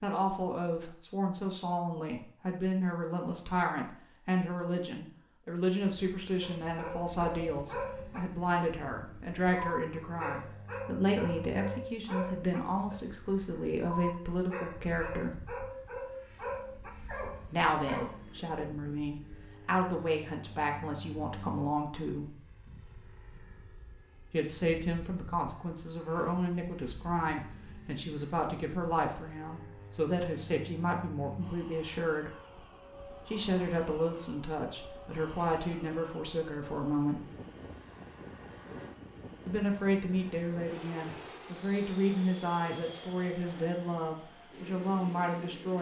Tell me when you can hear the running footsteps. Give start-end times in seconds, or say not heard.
not heard.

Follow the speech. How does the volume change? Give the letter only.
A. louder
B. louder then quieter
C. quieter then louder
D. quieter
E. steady
E.